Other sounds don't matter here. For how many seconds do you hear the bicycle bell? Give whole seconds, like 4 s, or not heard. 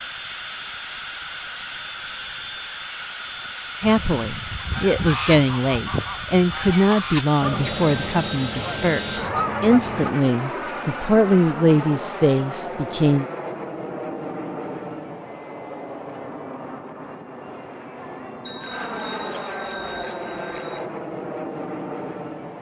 4 s.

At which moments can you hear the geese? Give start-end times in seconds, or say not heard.
3.8-10.1.